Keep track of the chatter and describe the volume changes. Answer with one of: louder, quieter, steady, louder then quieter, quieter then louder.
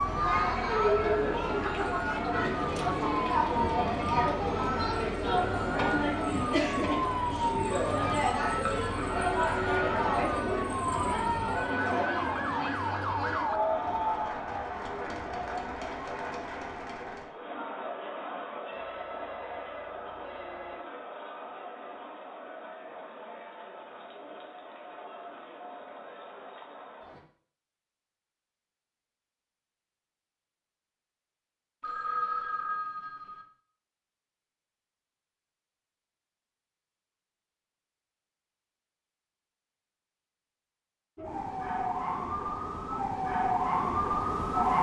quieter.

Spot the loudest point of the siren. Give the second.
44 s.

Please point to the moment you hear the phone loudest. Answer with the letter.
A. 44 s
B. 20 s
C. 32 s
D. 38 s
C.